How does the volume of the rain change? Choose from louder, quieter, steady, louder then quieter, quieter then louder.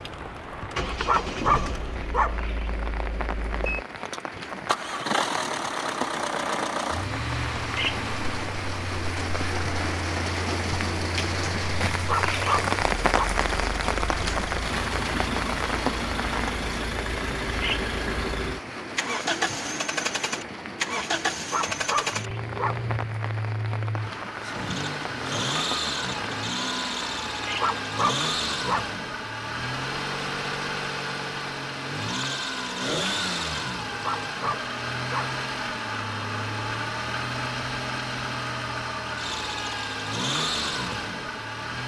louder then quieter.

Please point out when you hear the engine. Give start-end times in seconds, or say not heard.
0.0-41.8.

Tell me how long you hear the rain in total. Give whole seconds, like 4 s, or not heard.
28 s.